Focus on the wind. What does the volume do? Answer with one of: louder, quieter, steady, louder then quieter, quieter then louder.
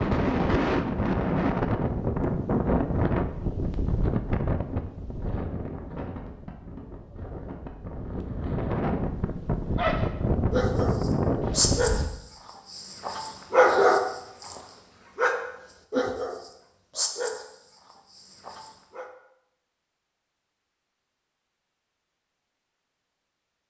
quieter then louder.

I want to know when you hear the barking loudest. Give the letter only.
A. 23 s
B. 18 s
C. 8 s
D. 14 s
D.